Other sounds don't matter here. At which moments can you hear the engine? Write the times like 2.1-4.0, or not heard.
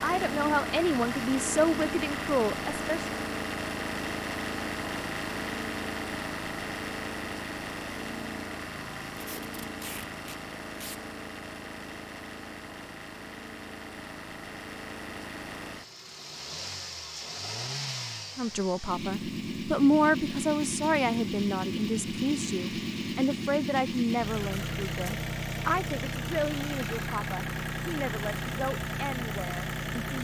0.0-30.1.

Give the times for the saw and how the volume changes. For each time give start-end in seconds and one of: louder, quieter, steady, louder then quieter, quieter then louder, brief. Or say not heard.
not heard.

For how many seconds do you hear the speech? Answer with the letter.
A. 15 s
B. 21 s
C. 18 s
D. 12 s
A.